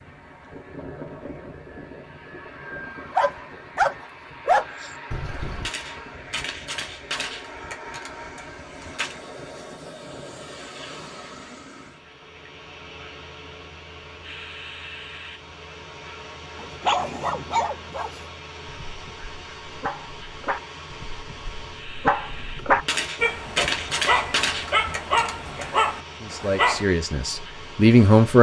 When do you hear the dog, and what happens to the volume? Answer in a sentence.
The dog can be heard briefly from 3.1 to 5.7 s; and from 16.6 to 26.9 s, getting quieter then louder.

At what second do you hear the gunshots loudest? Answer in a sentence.
The loudest moment of the gunshots is at 24 seconds.